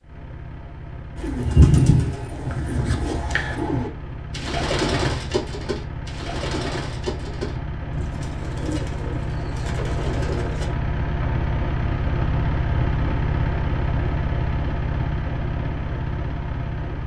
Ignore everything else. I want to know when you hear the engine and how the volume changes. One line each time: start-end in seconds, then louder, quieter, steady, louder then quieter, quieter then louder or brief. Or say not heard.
0.0-17.0 louder.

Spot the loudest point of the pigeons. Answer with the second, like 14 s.
2 s.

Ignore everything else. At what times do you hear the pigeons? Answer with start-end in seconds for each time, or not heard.
1.1-10.7.